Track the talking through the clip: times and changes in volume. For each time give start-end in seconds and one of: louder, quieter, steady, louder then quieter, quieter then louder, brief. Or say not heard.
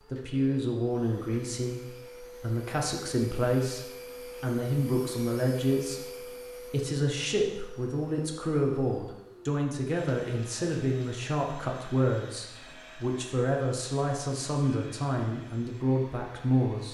0.1-16.8 steady.